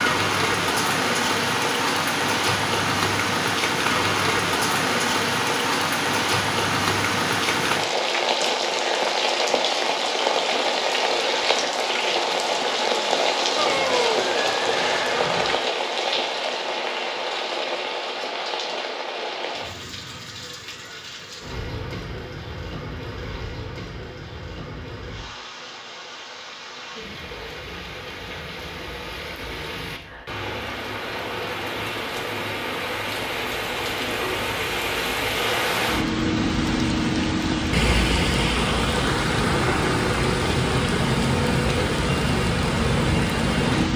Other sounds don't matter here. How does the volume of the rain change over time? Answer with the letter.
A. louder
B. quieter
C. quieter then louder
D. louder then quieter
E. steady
C.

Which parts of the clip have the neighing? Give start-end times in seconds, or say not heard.
13.6-15.6.